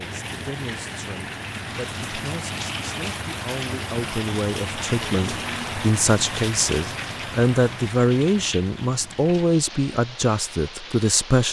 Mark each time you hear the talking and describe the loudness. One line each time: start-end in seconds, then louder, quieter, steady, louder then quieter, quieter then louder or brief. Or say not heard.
0.0-11.4 louder.